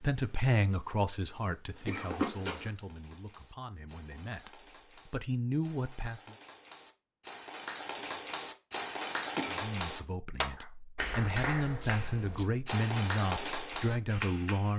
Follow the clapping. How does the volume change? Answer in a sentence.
The volume of the clapping goes up.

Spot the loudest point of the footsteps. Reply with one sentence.
The volume of the footsteps peaks at 2 seconds.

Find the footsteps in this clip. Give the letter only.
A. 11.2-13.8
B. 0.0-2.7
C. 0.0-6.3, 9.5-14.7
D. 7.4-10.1
B.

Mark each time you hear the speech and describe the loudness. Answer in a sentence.
You can hear the speech from 0.0 to 6.3 s, getting quieter then louder; and from 9.5 to 14.7 s, getting louder.